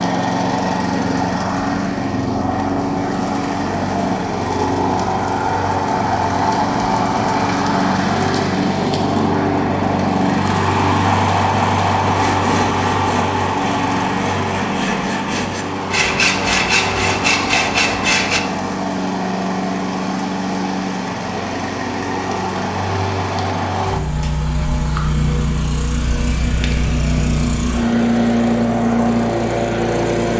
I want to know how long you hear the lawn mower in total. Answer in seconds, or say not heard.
30 s.